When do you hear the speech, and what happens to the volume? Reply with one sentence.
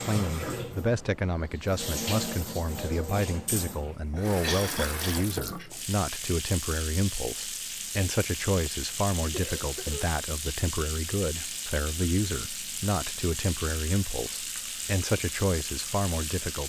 The speech can be heard from 0.1 to 16.6 s, at a steady volume.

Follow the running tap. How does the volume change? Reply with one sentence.
The volume of the running tap stays about the same.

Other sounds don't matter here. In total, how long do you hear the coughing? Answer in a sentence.
The coughing can be heard for 2 seconds in total.